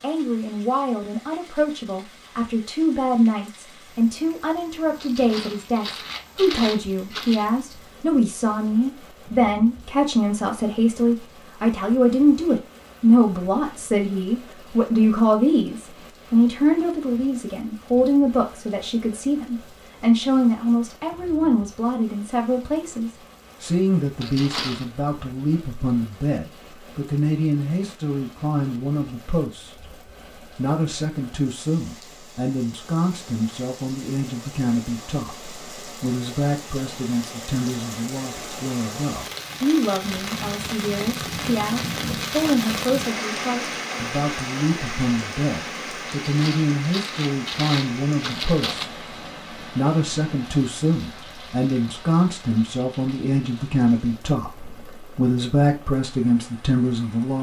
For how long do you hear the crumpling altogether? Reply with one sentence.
The crumpling can be heard for 6 seconds in total.